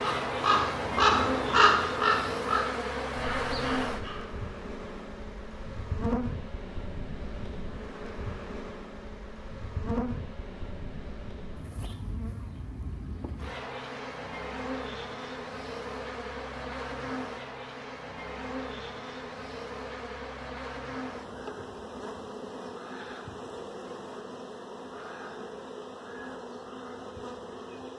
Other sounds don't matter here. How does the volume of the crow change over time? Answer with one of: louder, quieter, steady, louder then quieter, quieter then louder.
quieter.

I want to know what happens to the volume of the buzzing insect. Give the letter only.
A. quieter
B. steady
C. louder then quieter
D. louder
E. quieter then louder
A.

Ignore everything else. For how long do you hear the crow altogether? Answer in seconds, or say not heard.
4 s.